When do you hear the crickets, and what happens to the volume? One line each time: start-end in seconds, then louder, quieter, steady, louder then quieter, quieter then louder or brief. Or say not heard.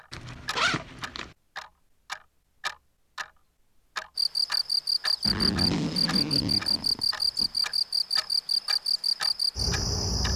4.2-10.3 steady.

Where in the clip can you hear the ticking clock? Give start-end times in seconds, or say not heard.
0.0-10.3.